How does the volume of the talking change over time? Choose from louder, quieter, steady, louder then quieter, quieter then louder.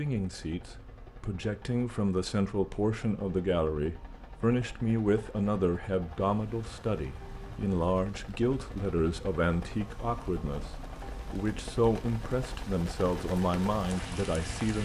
steady.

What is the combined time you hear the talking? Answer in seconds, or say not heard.
15 s.